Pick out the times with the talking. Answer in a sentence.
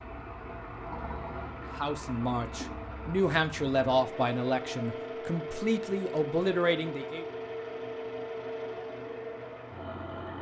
You can hear the talking from 1.8 to 7.2 s.